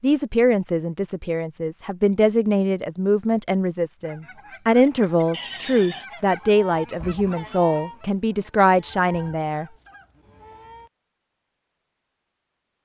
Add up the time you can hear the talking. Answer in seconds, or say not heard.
10 s.